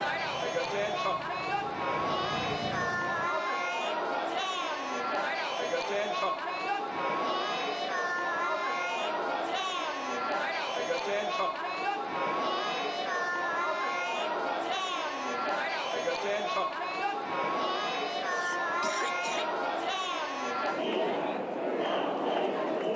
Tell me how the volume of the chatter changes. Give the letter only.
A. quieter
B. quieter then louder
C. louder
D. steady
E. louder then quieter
D.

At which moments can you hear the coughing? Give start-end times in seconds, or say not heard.
18.2-19.4.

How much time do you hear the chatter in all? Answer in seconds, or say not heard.
23 s.